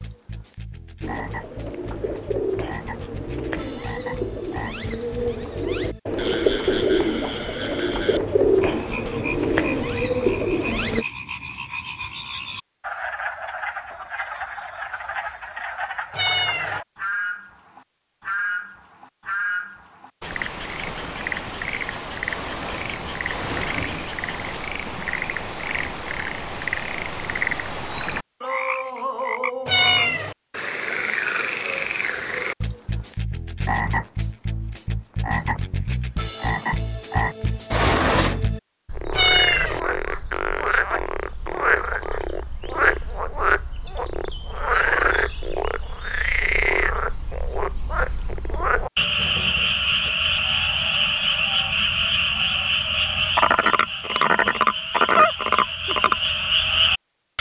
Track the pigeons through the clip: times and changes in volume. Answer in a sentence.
The pigeons can be heard from 1.0 to 11.1 s, getting louder.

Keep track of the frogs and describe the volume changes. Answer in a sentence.
The volume of the frogs goes up.